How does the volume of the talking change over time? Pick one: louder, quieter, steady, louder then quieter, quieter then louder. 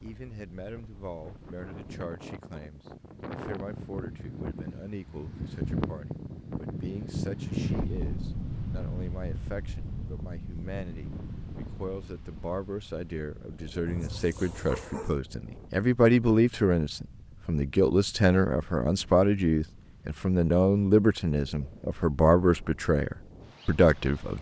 louder.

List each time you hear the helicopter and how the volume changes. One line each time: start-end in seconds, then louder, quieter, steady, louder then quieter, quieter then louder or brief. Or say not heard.
not heard.